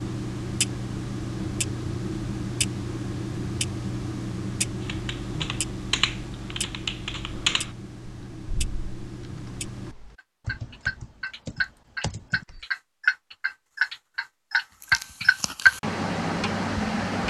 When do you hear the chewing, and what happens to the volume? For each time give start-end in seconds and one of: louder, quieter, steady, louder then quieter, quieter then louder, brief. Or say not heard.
not heard.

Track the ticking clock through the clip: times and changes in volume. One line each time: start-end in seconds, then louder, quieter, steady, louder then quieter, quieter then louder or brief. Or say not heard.
0.0-17.2 quieter then louder.